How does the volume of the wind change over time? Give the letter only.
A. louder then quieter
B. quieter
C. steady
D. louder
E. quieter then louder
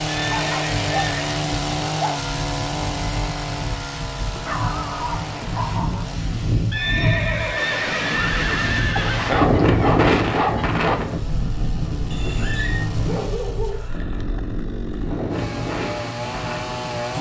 A.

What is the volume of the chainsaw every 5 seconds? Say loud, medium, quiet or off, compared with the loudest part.
loud, medium, medium, loud.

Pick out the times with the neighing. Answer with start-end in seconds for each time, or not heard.
0.1-1.4, 6.7-9.4, 12.1-12.8.